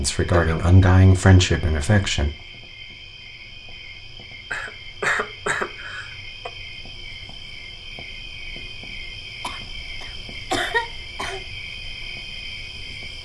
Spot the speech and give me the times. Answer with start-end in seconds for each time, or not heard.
0.0-2.3.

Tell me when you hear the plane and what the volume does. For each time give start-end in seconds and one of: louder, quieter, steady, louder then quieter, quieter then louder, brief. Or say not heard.
not heard.